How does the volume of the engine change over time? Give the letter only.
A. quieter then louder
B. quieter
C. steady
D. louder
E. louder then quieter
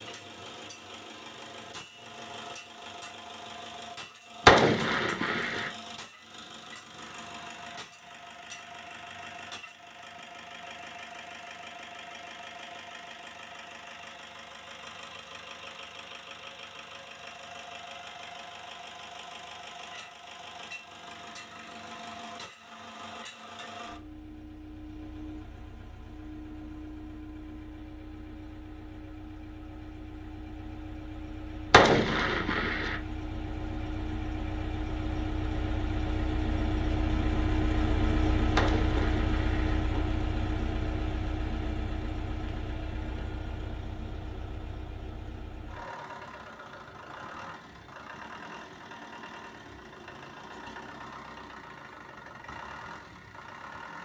E.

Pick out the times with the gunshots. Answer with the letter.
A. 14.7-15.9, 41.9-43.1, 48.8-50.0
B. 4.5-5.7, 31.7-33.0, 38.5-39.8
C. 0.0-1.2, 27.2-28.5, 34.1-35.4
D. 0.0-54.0
B.